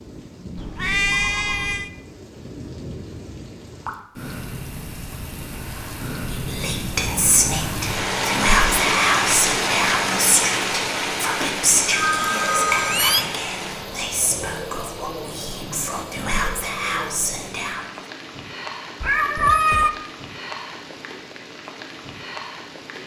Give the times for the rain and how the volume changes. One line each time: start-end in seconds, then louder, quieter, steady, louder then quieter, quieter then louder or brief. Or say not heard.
0.0-23.0 louder then quieter.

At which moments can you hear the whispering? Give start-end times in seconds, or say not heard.
6.2-17.9.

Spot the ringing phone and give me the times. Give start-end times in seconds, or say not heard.
0.8-1.7, 11.8-13.2.